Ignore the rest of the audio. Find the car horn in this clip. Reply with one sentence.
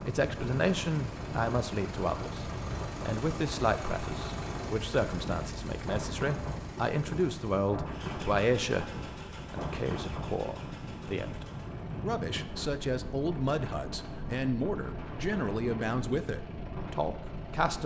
The car horn can't be heard in this clip.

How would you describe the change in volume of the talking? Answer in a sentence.
The volume of the talking stays about the same.